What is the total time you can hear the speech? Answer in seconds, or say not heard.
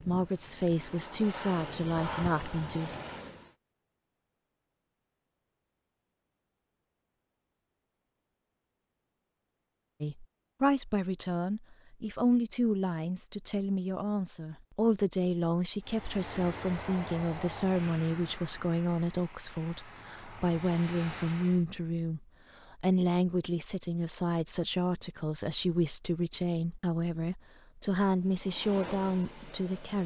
23 s.